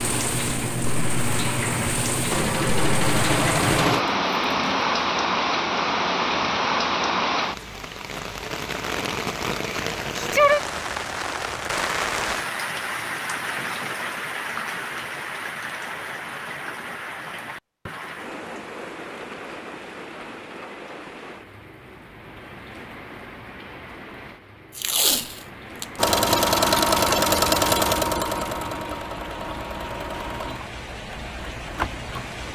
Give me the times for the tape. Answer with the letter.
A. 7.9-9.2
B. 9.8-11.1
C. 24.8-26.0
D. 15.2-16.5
C.